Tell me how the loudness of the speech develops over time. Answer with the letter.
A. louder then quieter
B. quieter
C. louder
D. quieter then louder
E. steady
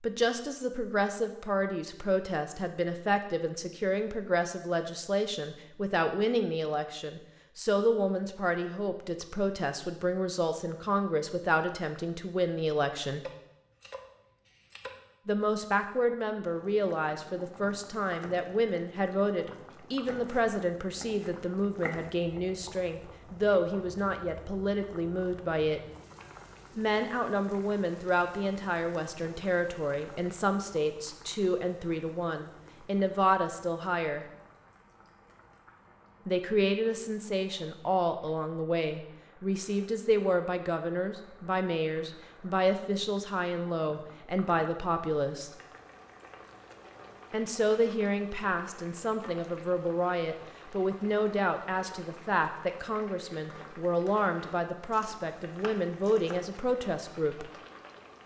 E.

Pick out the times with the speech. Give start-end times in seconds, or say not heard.
0.0-13.2, 15.2-25.8, 26.8-34.2, 36.2-45.5, 47.3-57.5.